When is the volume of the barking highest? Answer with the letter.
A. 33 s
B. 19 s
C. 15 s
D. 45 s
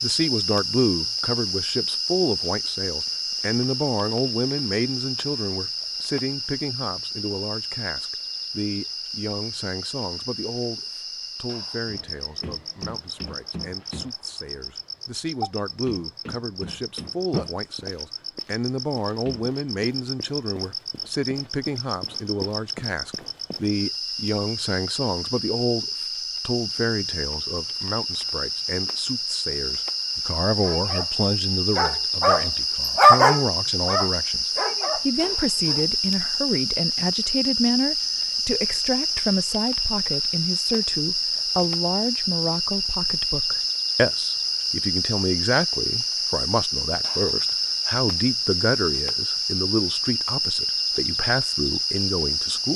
A.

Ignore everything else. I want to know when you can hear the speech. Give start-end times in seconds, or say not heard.
0.0-52.7.